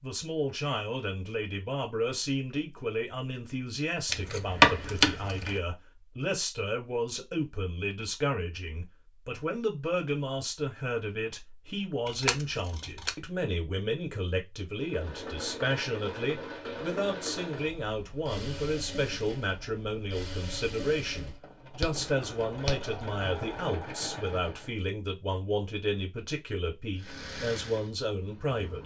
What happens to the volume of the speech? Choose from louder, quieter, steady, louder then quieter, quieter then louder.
steady.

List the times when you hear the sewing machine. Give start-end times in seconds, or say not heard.
14.8-24.8, 26.9-28.8.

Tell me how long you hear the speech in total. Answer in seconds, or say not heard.
29 s.